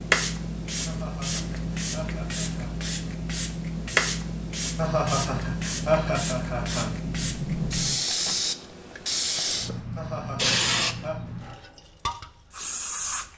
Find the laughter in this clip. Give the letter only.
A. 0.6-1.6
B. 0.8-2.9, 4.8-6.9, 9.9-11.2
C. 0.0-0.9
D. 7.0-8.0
B.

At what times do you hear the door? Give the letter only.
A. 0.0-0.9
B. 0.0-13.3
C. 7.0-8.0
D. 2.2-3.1
C.